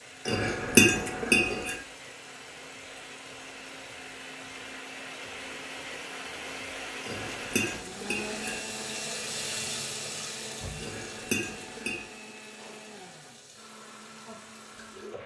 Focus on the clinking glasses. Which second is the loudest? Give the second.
1 s.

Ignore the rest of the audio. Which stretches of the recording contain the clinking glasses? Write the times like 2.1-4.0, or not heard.
0.2-1.8, 7.0-8.6, 10.8-12.1.